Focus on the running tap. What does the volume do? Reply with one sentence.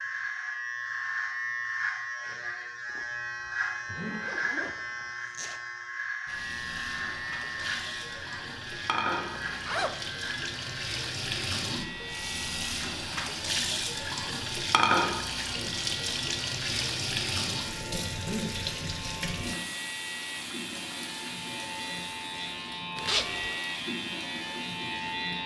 The volume of the running tap goes up, then down.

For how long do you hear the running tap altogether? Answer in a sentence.
The running tap can be heard for 19 seconds in total.